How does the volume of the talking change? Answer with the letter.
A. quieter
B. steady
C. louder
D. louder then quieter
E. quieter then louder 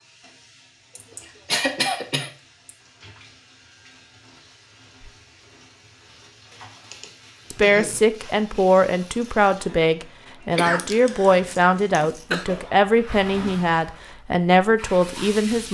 B.